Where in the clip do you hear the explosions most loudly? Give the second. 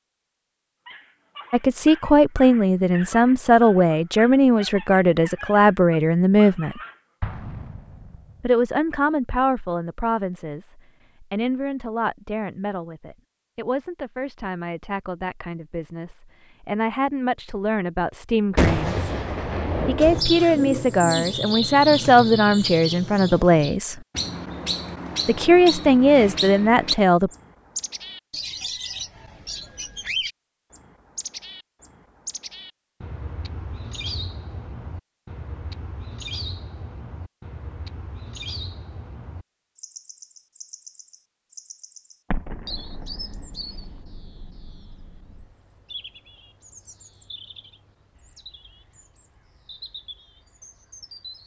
19 s.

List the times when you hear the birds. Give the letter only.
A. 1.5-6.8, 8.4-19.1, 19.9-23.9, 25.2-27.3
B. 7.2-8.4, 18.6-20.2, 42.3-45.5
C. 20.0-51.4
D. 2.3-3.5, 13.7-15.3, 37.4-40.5
C.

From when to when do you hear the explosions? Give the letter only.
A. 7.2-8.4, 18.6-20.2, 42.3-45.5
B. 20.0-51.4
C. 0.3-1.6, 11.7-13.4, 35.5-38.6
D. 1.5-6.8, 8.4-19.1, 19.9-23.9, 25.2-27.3
A.